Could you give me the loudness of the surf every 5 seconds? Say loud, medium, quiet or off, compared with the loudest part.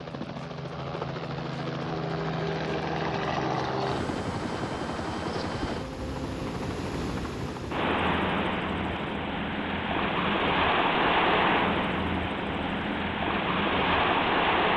off, medium, loud.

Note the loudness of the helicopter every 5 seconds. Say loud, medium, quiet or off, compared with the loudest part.
loud, medium, quiet.